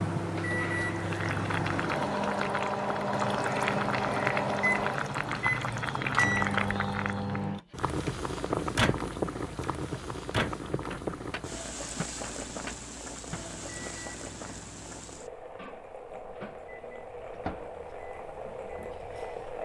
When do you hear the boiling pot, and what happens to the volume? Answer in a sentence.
The boiling pot can be heard from 0.0 to 19.6 s, getting quieter.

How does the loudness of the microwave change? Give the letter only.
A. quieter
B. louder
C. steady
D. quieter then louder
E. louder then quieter
A.